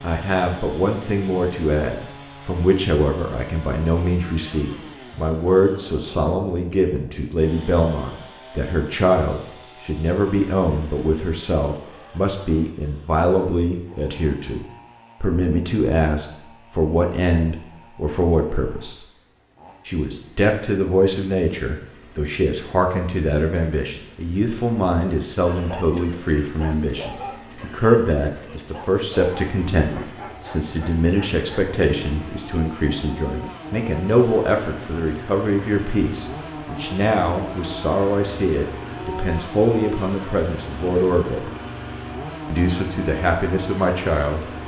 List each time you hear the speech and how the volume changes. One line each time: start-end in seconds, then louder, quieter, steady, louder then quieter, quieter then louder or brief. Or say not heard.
0.0-19.1 steady
19.9-41.5 steady
42.5-44.5 brief.